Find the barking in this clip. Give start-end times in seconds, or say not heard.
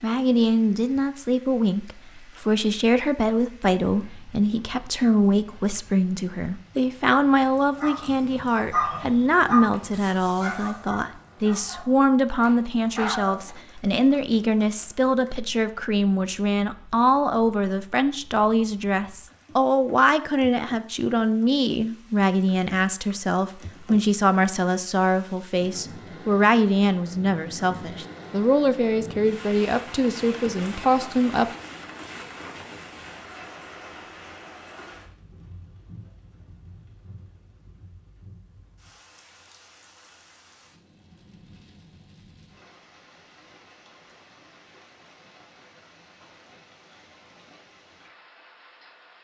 7.6-13.6.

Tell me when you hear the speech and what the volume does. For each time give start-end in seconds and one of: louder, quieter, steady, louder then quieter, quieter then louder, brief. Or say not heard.
0.0-31.5 steady.